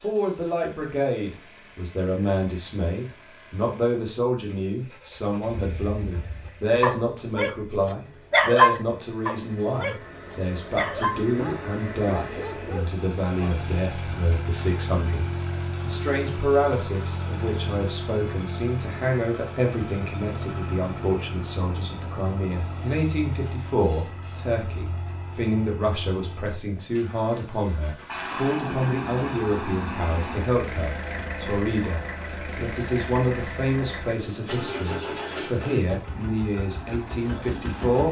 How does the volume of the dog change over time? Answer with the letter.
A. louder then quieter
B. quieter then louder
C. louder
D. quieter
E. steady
A.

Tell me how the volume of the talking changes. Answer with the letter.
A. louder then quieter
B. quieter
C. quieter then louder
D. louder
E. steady
E.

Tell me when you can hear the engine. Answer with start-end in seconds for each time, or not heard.
0.0-38.0.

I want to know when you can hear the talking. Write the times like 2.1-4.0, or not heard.
0.0-38.0.